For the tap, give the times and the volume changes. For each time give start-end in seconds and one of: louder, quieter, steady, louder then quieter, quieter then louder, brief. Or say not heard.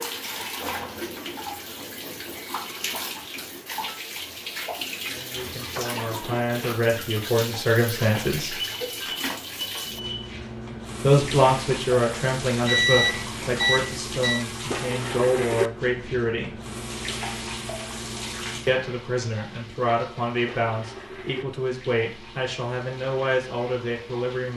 0.0-24.5 quieter.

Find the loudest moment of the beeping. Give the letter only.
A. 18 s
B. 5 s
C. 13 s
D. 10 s
C.